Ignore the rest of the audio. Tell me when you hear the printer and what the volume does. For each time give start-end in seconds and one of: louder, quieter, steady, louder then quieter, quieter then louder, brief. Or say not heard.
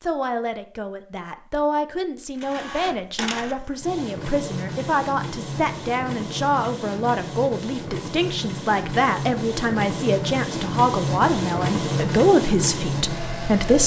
2.4-13.8 louder.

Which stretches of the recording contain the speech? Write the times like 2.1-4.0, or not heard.
0.0-13.8.